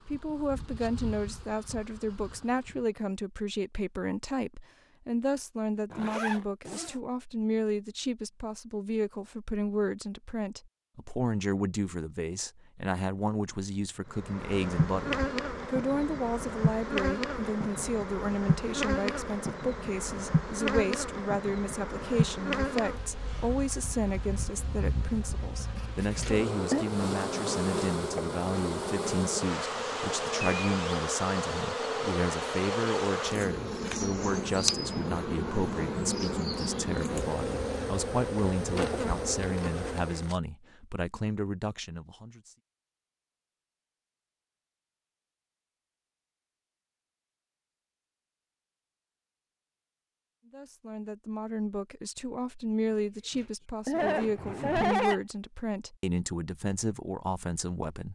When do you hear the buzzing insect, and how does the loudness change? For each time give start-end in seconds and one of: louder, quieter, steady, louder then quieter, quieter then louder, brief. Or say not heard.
0.0-3.0 brief
14.1-40.4 steady.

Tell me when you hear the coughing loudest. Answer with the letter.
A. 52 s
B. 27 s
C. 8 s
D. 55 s
D.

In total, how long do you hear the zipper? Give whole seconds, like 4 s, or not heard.
3 s.